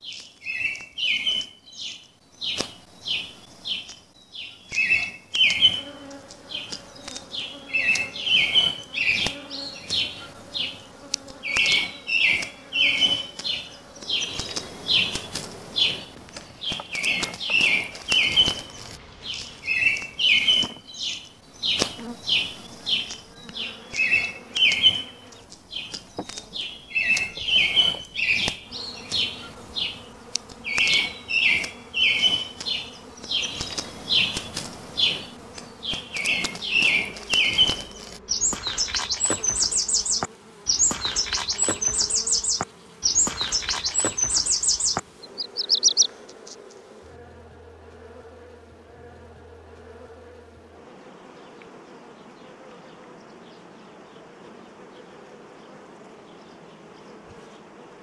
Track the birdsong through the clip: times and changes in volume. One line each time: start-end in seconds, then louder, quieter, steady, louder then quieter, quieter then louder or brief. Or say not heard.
0.0-46.5 steady.